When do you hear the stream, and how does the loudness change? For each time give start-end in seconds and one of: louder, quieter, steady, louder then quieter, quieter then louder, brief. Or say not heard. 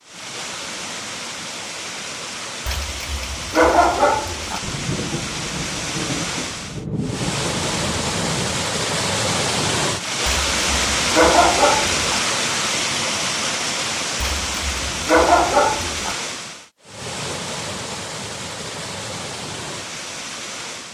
0.0-20.8 louder then quieter.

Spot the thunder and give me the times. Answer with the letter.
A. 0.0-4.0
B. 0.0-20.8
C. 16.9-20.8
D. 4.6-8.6
D.